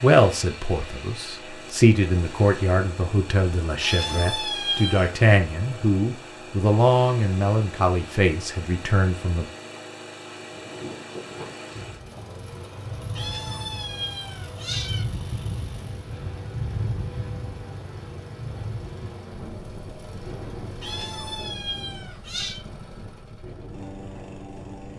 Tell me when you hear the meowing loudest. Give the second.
5 s.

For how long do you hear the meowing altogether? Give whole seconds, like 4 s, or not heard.
5 s.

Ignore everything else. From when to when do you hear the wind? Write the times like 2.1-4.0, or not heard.
10.3-24.9.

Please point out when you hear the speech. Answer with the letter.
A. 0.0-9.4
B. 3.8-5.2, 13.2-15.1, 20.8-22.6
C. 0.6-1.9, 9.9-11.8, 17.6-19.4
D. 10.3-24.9
A.